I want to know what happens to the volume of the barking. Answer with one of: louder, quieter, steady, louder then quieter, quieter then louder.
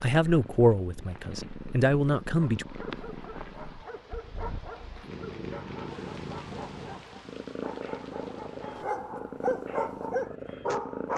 louder.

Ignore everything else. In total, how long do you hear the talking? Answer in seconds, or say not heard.
3 s.